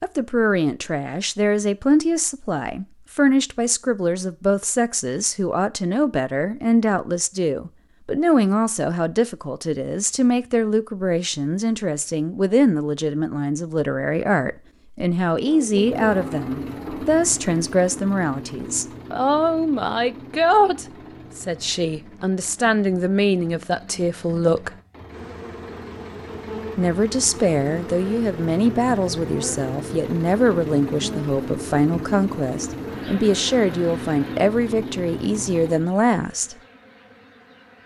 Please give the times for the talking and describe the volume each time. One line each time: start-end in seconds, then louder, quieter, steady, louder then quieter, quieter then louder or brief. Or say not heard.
0.0-24.7 steady
26.8-36.5 steady.